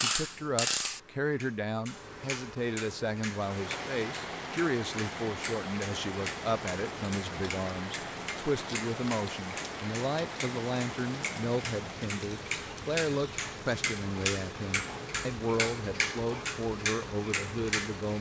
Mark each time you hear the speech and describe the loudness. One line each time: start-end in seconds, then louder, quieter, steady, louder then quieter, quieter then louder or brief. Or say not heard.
0.0-18.1 steady.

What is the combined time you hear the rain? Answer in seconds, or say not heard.
15 s.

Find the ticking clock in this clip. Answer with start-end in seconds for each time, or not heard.
0.0-18.1.